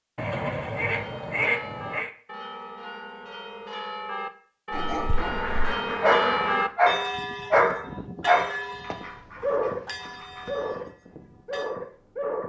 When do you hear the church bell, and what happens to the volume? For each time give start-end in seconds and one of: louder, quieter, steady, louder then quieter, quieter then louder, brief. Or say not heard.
0.9-11.8 louder then quieter.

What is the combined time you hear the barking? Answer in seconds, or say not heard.
8 s.